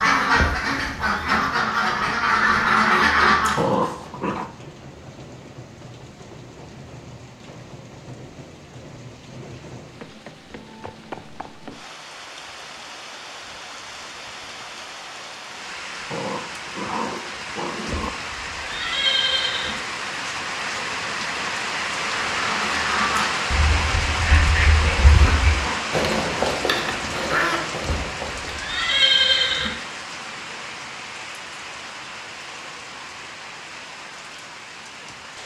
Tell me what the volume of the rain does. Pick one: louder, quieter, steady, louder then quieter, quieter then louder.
louder then quieter.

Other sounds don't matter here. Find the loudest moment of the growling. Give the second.
4 s.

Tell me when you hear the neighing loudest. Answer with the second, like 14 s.
29 s.